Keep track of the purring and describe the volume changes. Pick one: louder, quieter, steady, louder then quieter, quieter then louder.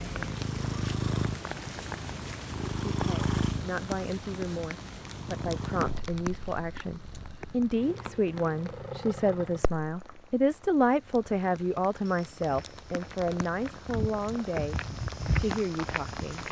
quieter then louder.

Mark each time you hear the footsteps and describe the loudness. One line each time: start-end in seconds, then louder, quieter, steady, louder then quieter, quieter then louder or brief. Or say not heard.
12.1-16.4 louder.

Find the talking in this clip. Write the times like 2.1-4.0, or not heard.
3.0-16.4.